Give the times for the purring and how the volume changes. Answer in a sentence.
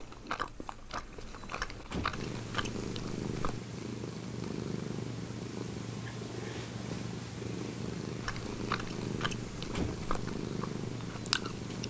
The purring can be heard from 2.1 to 11.8 s, at a steady volume.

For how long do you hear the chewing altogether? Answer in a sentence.
You can hear the chewing for 7 seconds altogether.